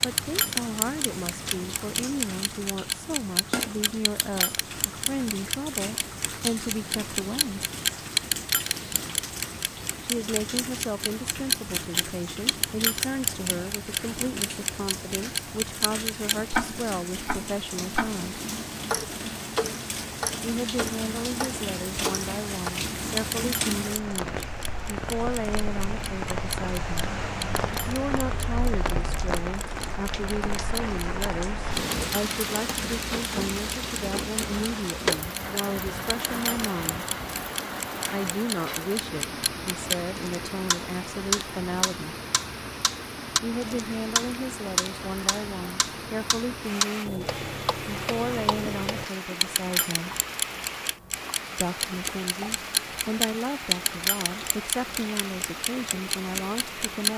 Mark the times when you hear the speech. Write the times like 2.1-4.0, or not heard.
0.0-7.7, 10.0-18.4, 20.4-37.0, 38.1-42.1, 43.4-50.1, 51.5-57.1.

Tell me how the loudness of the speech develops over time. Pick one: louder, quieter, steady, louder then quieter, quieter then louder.
steady.